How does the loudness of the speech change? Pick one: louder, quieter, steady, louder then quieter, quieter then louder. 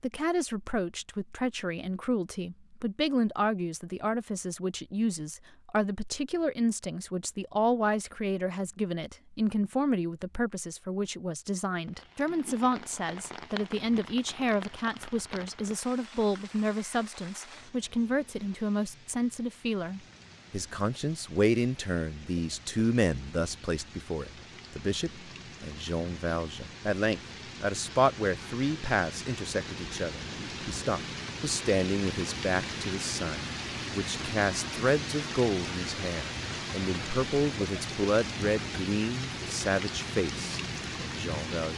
steady.